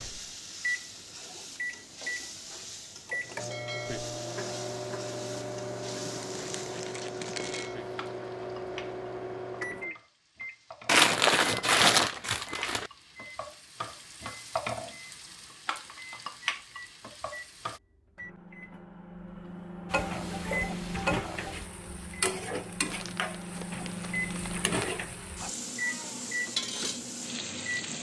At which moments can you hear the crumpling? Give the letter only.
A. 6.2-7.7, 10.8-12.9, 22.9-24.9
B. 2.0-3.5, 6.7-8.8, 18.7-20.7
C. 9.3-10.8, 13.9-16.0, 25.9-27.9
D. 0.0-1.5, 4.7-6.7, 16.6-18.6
A.